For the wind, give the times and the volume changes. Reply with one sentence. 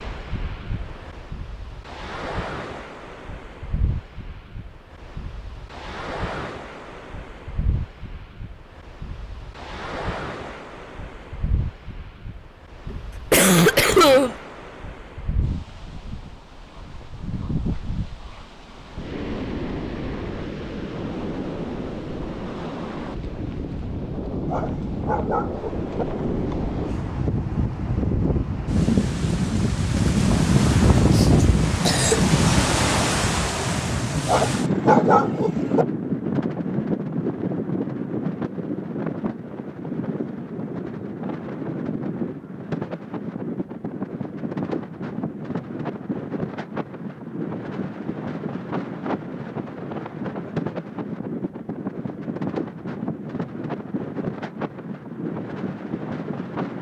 You can hear the wind from 0.0 to 56.7 s, getting louder then quieter.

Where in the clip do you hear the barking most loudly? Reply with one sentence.
The volume of the barking peaks at 35 seconds.